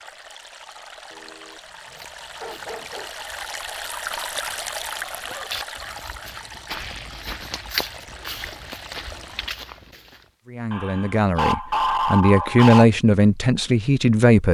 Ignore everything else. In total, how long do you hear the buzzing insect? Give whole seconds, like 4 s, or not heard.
not heard.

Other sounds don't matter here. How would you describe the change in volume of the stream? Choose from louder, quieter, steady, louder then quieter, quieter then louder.
louder then quieter.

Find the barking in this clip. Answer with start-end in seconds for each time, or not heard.
1.1-3.1, 5.2-7.2, 10.7-12.8.